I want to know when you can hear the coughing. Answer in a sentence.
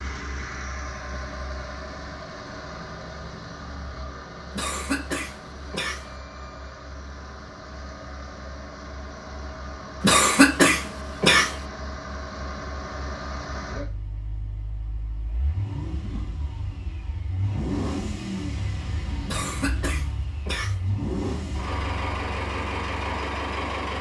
The coughing can be heard from 4.5 to 6.1 s, from 10.0 to 11.6 s and from 19.2 to 20.8 s.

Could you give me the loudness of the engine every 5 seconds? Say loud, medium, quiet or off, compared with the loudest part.
medium, medium, medium, loud, loud.